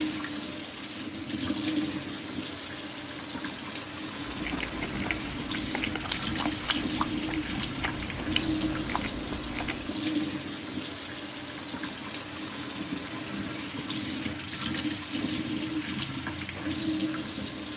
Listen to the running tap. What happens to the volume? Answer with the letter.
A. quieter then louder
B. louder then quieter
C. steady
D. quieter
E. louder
C.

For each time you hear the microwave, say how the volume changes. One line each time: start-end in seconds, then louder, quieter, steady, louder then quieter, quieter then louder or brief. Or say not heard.
not heard.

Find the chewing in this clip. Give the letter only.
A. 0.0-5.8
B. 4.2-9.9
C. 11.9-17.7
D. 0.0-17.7
B.